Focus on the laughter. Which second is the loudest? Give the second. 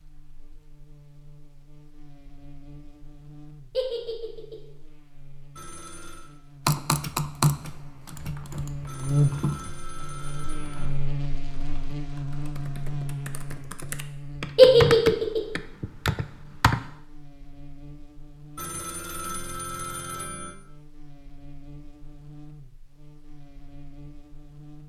15 s.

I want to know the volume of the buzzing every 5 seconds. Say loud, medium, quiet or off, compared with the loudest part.
quiet, loud, loud, quiet, quiet.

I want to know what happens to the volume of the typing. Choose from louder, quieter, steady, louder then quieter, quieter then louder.
quieter then louder.